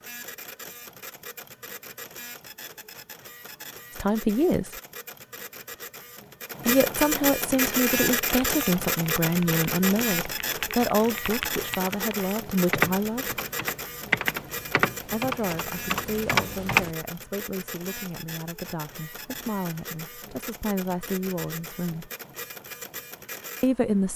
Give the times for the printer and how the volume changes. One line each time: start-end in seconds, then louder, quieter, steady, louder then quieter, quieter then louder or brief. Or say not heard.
0.0-24.1 louder then quieter.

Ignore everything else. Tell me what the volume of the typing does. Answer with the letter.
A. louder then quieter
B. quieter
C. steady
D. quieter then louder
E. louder
E.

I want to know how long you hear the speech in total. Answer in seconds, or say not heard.
15 s.